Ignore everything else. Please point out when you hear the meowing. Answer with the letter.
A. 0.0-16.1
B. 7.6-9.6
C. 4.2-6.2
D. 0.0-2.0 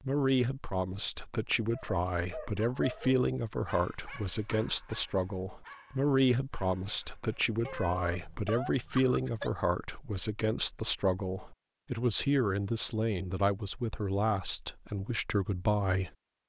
B.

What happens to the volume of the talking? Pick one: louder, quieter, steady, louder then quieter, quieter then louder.
steady.